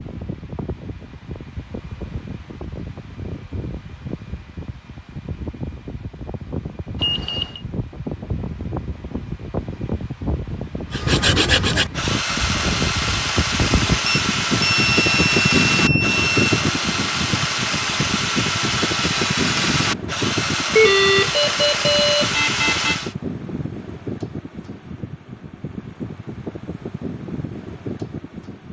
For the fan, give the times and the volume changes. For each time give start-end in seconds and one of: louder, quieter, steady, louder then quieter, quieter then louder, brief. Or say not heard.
0.0-28.6 louder then quieter.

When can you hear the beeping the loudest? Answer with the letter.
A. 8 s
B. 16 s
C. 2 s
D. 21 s
D.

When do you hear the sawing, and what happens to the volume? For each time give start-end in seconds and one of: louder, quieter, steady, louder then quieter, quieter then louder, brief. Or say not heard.
10.9-23.1 steady.